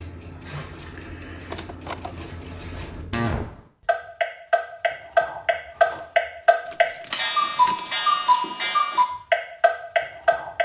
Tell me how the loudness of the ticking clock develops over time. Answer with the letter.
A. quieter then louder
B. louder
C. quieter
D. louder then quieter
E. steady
B.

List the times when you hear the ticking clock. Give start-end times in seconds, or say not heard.
0.0-10.6.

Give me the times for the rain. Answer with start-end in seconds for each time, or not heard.
not heard.